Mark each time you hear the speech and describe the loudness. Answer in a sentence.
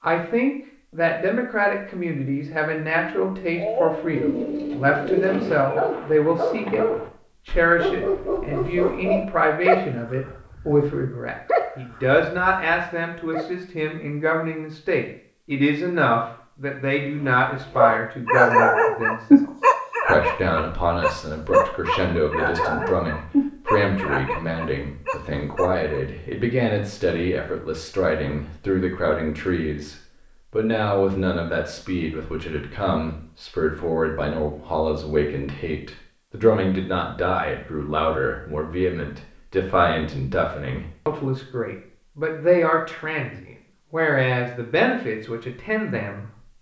You can hear the speech from 0.0 to 6.8 s, at a steady volume; and from 7.5 to 46.5 s, at a steady volume.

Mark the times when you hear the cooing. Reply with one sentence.
You can hear the cooing from 4.2 to 5.7 s.